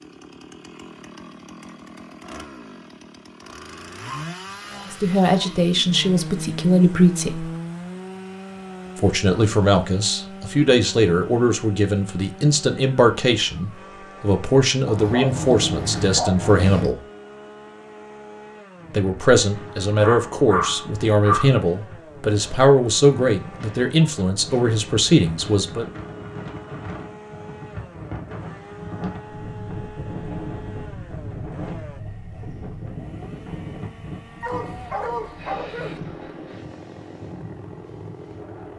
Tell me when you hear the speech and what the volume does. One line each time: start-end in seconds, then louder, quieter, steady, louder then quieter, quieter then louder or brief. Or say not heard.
4.9-7.5 brief
8.9-17.0 steady
18.9-25.9 steady.